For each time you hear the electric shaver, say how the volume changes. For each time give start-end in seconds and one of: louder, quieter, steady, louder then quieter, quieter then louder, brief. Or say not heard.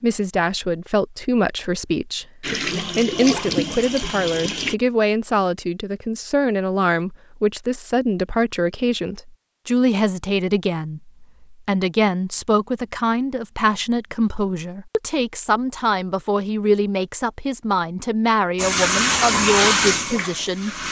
not heard.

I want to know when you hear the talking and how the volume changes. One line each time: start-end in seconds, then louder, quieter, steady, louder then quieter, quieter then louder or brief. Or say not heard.
0.0-20.8 steady.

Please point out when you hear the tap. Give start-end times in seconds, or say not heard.
2.4-4.8, 18.6-20.8.